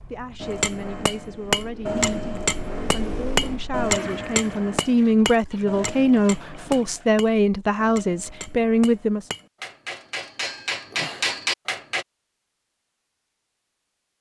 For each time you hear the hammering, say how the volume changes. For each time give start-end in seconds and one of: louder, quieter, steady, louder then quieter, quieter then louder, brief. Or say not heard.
0.4-12.1 quieter then louder.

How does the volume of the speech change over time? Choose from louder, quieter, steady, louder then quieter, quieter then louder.
louder.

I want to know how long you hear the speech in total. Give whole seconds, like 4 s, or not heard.
9 s.